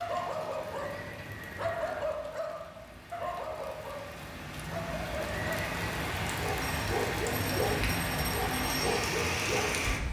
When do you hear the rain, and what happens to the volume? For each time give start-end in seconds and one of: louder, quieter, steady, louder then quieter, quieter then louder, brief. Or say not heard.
0.0-10.0 louder.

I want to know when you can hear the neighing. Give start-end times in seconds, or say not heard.
0.6-2.0, 5.2-6.0.